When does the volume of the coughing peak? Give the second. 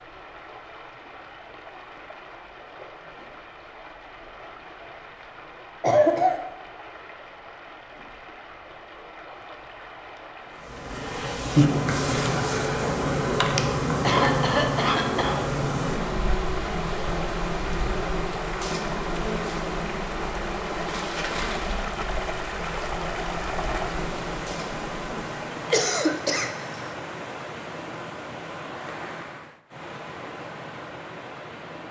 6 s.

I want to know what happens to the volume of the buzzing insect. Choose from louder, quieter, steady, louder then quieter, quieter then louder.
quieter.